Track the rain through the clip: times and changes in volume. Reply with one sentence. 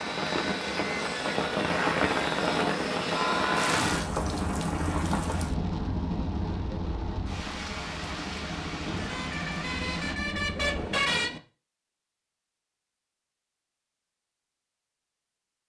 You can hear the rain from 0.0 to 10.2 s, getting quieter.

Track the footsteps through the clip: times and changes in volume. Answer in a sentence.
The footsteps can't be heard in this clip.